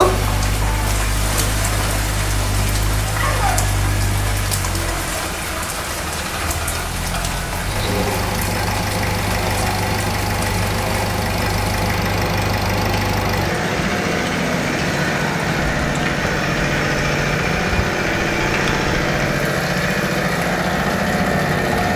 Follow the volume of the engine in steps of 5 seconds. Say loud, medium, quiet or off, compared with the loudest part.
medium, medium, loud, loud, loud.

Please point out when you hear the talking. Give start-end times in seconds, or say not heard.
not heard.